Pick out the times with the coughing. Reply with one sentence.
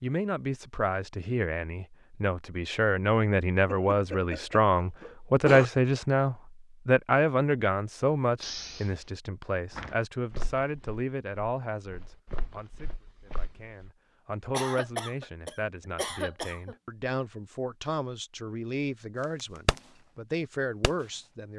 The coughing can be heard from 3.6 to 5.7 s, from 8.4 to 9.1 s and from 14.5 to 16.8 s.